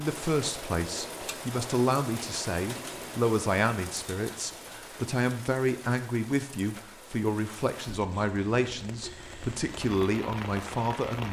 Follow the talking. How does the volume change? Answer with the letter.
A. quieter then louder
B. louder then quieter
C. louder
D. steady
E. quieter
D.